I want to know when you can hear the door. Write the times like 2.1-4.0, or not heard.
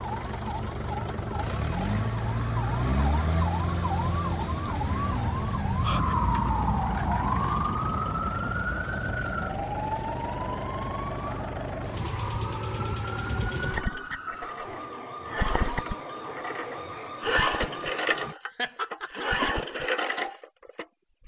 not heard.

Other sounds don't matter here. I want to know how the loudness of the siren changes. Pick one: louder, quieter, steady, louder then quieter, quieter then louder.
louder then quieter.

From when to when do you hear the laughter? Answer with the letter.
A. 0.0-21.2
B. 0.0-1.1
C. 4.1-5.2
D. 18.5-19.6
D.